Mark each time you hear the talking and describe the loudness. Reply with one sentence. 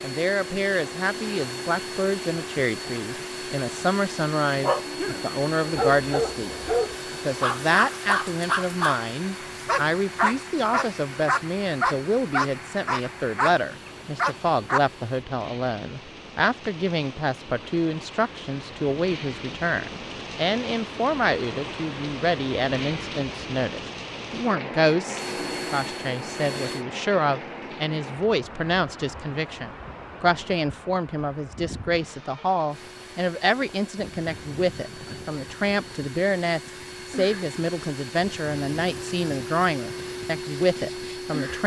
You can hear the talking from 0.0 to 41.6 s, at a steady volume.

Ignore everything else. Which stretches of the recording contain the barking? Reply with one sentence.
The barking can be heard from 4.6 to 14.8 s.